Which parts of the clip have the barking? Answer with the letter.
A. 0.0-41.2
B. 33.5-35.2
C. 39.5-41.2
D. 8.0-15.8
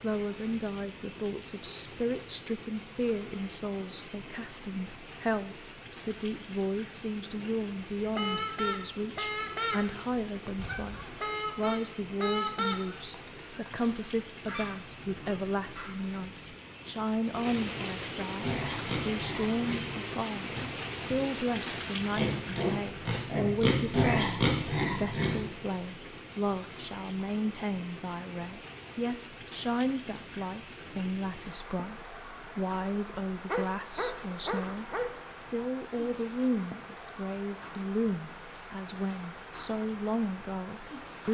B.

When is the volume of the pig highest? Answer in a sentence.
The volume of the pig peaks at 24 seconds.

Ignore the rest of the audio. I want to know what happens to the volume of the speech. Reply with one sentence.
The loudness of the speech stays about the same.